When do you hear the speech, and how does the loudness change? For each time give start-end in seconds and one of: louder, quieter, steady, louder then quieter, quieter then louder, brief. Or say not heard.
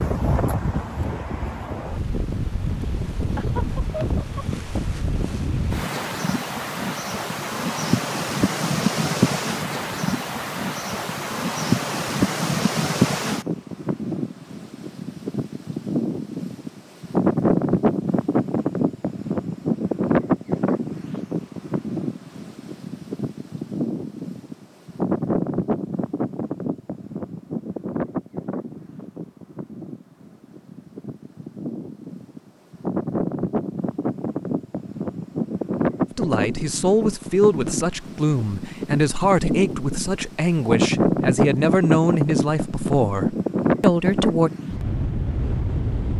36.1-44.5 steady.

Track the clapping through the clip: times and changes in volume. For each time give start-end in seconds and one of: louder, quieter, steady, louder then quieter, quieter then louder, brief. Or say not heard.
not heard.